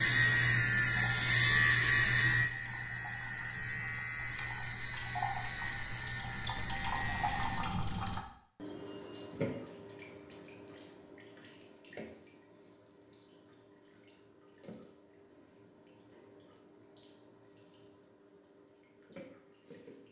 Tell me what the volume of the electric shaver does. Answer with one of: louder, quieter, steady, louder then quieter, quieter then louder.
quieter.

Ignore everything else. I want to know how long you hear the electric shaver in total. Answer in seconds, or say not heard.
8 s.